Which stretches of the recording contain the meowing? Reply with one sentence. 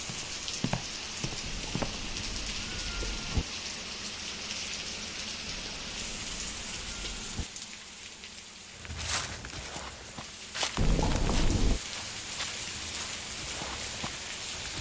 You can hear the meowing from 1.4 to 3.5 s, from 5.5 to 7.5 s and from 10.8 to 11.8 s.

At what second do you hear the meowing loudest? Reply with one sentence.
The loudest moment of the meowing is at 11 seconds.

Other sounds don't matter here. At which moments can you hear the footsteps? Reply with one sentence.
The footsteps can be heard from 0.0 to 2.1 s and from 8.8 to 14.7 s.